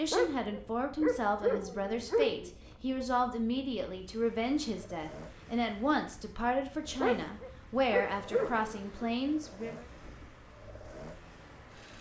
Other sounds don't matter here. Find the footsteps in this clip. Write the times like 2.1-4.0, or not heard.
not heard.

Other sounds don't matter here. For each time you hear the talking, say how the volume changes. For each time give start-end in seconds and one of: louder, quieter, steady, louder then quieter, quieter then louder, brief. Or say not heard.
0.0-9.8 steady.